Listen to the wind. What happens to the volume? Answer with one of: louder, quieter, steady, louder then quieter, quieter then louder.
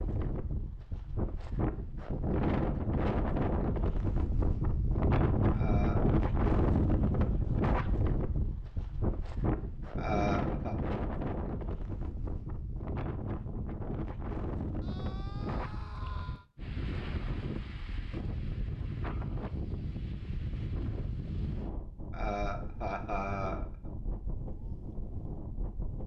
quieter.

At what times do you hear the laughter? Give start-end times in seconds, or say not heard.
5.5-6.2, 9.9-10.8, 22.1-23.6.